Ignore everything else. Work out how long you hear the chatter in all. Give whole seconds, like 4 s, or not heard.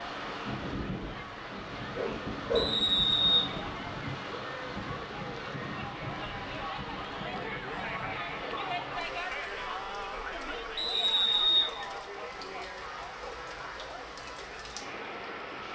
16 s.